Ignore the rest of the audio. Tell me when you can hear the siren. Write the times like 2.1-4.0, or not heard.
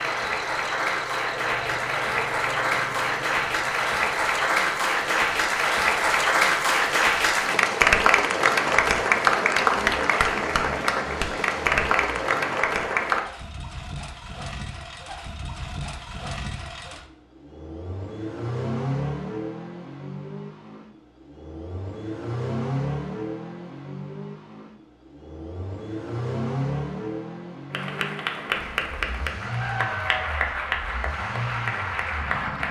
not heard.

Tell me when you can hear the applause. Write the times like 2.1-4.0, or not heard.
0.0-13.2, 27.7-32.6.